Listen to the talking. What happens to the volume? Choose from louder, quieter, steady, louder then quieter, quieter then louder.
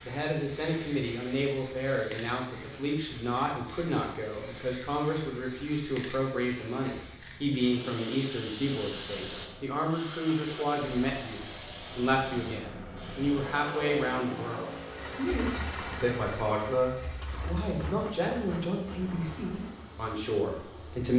steady.